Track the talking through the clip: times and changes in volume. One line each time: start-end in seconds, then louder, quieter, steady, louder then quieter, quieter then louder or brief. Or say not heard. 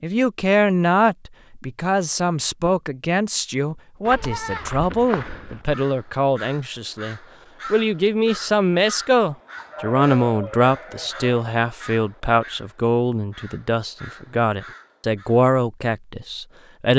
0.0-16.9 steady.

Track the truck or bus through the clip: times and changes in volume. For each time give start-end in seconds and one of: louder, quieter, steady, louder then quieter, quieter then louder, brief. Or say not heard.
not heard.